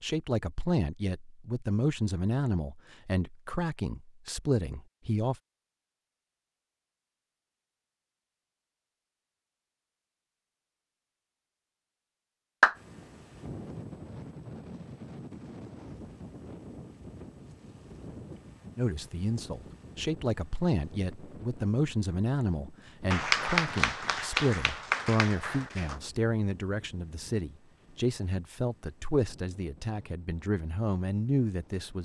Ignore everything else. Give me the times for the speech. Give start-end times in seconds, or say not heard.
0.0-5.3, 18.8-32.0.